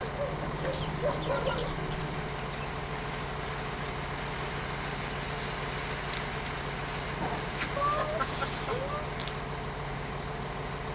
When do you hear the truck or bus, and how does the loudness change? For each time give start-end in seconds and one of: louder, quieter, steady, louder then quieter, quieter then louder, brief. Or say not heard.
0.0-10.9 steady.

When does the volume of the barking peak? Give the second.
1 s.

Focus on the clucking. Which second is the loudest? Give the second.
8 s.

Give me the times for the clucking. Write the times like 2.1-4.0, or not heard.
0.6-3.4, 7.2-8.9.